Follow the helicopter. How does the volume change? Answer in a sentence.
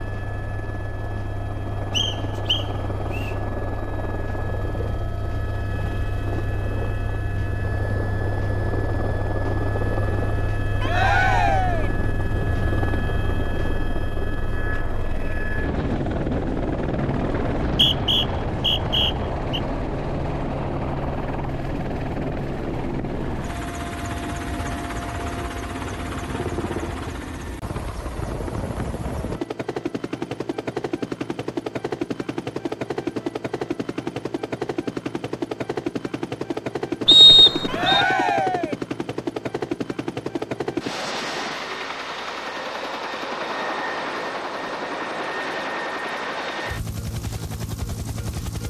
The loudness of the helicopter stays about the same.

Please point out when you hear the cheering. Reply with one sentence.
You can hear the cheering from 10.8 to 11.9 s and from 37.6 to 38.8 s.